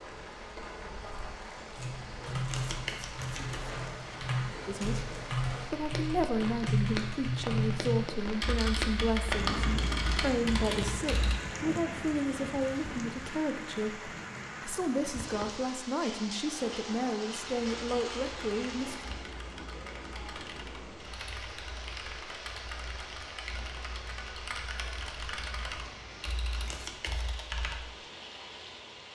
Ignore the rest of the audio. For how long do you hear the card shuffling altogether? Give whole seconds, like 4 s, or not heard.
2 s.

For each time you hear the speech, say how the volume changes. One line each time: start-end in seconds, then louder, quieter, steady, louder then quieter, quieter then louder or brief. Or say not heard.
4.7-19.0 steady.